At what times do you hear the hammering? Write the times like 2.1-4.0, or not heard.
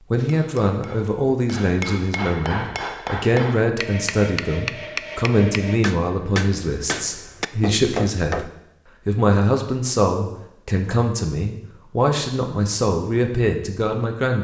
0.1-8.5.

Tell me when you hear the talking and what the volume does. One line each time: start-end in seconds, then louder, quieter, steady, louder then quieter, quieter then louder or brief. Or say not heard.
0.1-8.4 steady
9.1-14.3 steady.